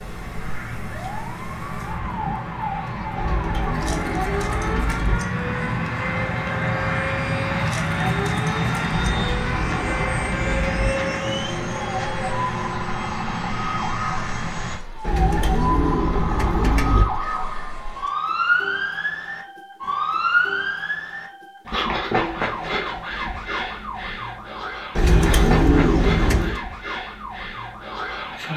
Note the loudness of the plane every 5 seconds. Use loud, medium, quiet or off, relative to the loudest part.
medium, loud, loud, off, off, off.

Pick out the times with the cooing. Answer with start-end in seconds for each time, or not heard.
3.1-5.2, 8.9-10.9, 15.1-17.1, 24.9-26.6.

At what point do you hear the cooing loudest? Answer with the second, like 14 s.
26 s.